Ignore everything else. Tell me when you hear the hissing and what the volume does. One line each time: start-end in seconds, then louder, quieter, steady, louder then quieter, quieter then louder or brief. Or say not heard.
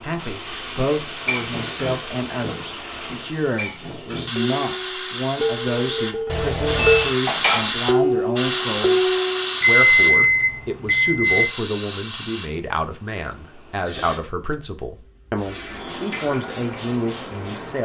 0.0-17.8 louder then quieter.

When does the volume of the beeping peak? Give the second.
10 s.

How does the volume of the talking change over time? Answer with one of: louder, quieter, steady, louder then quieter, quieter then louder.
steady.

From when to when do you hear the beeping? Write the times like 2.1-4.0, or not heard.
6.2-7.2, 9.6-11.5.